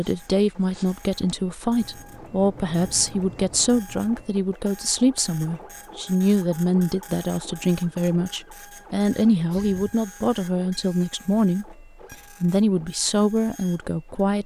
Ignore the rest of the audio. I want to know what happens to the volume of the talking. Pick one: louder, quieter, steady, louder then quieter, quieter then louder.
steady.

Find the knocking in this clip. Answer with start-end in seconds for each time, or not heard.
not heard.